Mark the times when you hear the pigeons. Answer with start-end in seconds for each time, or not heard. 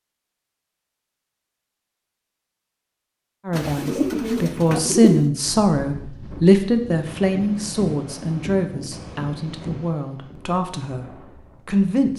3.5-5.3.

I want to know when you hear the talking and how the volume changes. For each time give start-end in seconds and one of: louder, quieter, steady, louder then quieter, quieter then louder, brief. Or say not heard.
3.5-11.1 quieter
11.7-12.1 brief.